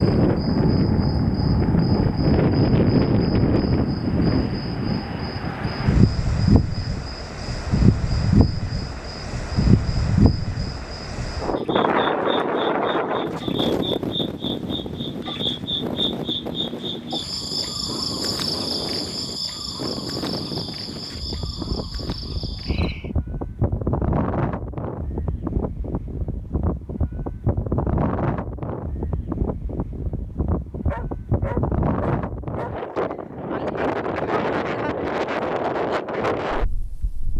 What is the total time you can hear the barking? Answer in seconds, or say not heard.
2 s.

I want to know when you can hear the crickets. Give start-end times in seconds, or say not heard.
0.0-23.1.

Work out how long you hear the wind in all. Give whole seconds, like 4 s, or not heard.
37 s.